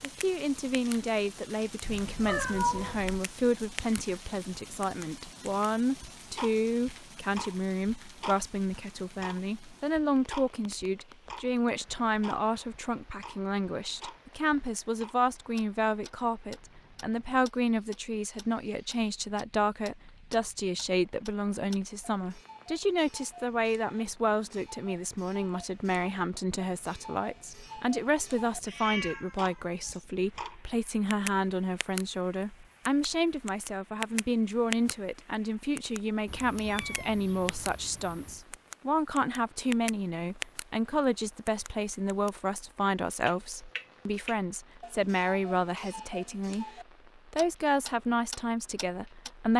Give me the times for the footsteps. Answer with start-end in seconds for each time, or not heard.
not heard.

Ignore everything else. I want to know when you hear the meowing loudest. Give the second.
3 s.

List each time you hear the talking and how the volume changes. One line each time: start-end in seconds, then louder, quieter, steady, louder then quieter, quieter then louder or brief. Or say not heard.
0.0-46.6 steady
47.3-49.5 brief.